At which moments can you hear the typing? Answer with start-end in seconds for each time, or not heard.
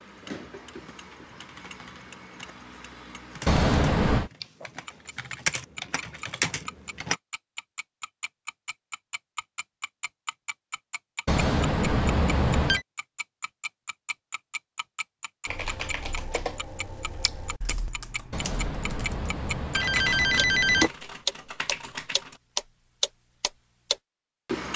0.3-7.2, 15.4-22.4.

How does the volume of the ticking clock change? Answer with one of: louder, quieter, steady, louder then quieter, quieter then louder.
louder.